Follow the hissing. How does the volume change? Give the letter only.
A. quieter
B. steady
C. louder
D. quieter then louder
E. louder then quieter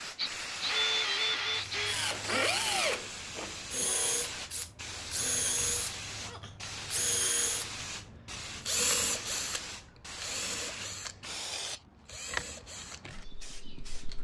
B.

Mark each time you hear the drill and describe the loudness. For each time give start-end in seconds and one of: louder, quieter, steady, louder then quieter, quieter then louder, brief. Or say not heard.
0.1-14.2 quieter.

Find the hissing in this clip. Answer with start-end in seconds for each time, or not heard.
0.0-14.2.